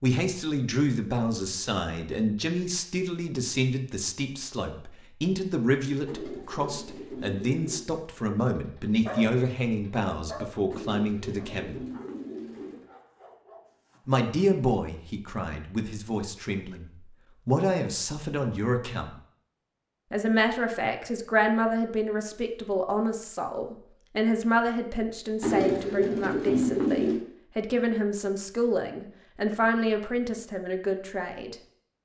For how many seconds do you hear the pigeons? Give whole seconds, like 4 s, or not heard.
6 s.